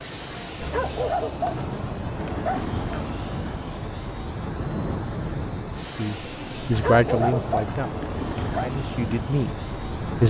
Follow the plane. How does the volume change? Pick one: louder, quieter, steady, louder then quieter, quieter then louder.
steady.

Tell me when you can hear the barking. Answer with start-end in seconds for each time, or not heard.
0.6-3.1, 6.7-8.7.